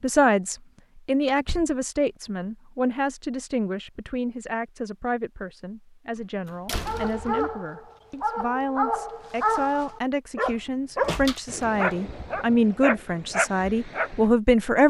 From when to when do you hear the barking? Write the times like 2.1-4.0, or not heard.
6.8-14.2.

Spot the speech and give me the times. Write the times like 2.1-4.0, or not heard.
0.0-14.8.